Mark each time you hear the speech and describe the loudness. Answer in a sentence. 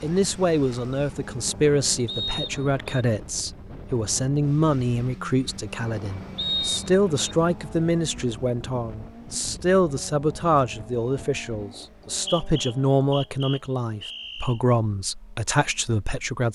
The speech can be heard from 0.0 to 16.5 s, at a steady volume.